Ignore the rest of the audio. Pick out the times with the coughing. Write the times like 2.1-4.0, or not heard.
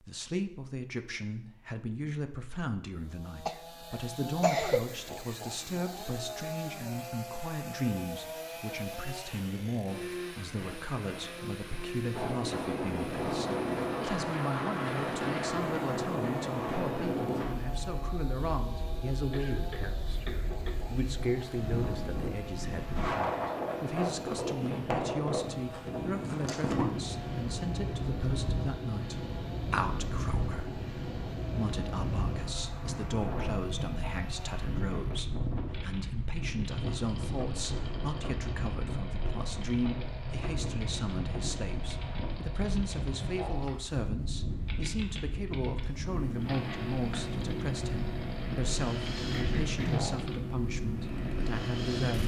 3.5-4.8, 19.3-20.8, 49.4-50.1.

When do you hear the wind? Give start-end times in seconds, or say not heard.
12.1-52.2.